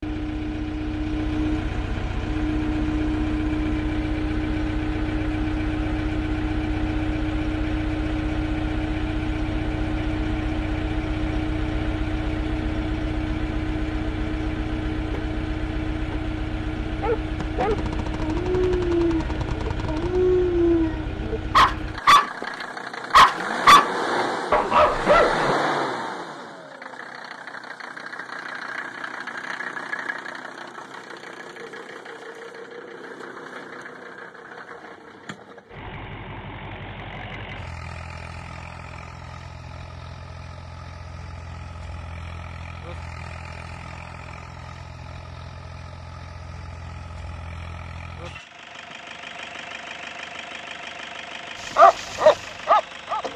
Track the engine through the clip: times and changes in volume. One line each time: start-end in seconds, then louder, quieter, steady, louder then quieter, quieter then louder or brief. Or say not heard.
0.0-53.3 quieter.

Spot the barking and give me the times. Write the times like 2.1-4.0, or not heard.
17.0-22.4, 23.1-25.6, 51.8-53.3.